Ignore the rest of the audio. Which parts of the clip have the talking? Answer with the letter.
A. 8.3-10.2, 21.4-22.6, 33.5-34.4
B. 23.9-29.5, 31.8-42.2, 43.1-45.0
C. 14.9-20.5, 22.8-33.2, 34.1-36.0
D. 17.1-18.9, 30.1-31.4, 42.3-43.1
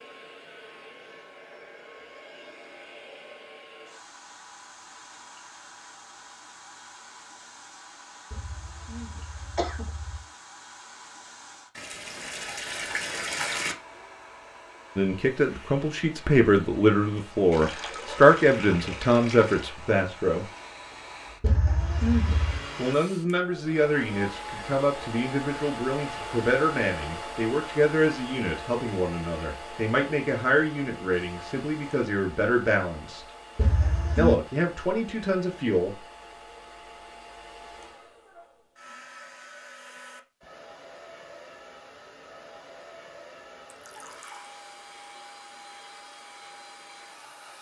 C.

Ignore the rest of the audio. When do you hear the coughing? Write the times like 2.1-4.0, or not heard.
8.3-10.2, 21.4-22.6, 33.5-34.4.